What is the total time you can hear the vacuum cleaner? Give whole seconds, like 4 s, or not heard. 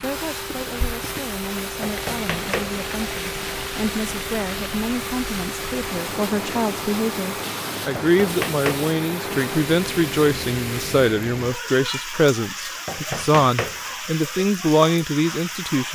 11 s.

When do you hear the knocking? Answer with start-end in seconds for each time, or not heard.
1.8-2.8, 8.0-8.9, 12.8-13.8.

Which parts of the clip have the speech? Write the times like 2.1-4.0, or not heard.
0.0-15.9.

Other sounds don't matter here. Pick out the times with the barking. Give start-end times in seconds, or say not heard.
not heard.